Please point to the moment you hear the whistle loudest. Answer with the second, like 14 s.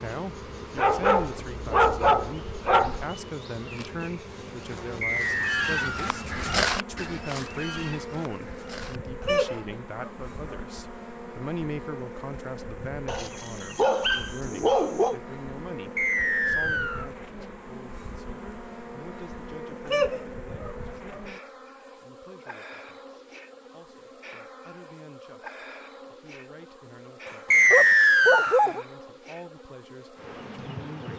28 s.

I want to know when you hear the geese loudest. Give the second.
7 s.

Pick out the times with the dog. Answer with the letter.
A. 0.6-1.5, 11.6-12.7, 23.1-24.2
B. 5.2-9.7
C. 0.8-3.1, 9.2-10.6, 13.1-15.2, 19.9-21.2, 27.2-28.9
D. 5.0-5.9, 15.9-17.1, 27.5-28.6
C.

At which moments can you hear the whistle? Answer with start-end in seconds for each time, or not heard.
5.0-5.9, 15.9-17.1, 27.5-28.6.